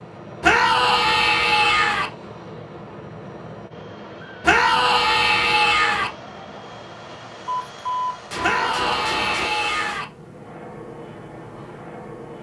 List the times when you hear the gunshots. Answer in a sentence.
The gunshots can be heard from 7.5 to 9.5 s.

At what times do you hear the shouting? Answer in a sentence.
You can hear the shouting from 0.4 to 2.1 s, from 4.4 to 6.1 s and from 8.4 to 10.1 s.